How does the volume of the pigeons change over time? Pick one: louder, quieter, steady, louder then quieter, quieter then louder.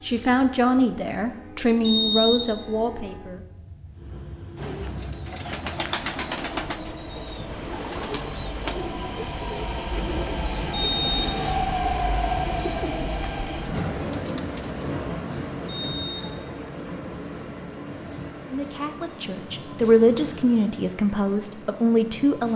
quieter.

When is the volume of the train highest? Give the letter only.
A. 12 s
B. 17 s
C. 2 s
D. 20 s
A.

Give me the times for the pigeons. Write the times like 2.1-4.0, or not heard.
4.5-15.1.